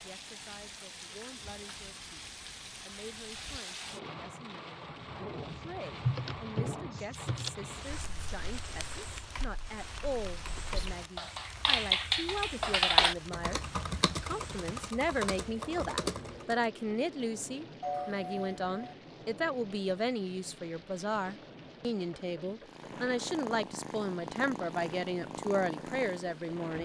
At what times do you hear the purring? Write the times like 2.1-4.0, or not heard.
22.6-26.8.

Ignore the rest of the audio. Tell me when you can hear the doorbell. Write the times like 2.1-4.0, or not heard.
17.8-18.9.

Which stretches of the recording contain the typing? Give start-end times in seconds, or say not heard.
5.5-16.6.